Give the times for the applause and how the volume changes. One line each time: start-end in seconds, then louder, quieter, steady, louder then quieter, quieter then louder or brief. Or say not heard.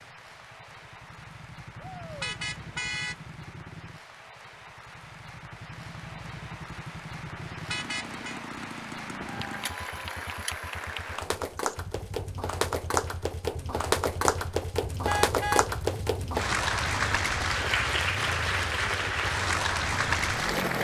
0.0-20.8 louder.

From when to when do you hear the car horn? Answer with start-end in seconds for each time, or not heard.
2.2-3.2, 7.7-8.4, 15.1-15.8.